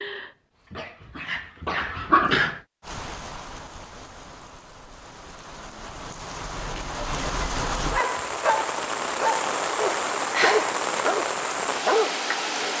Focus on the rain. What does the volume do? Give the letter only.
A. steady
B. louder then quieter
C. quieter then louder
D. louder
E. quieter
D.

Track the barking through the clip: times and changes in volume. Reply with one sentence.
The barking can be heard briefly from 0.0 to 2.6 s; and from 7.8 to 12.7 s, at a steady volume.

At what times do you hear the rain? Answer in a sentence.
The rain can be heard from 2.8 to 12.7 s.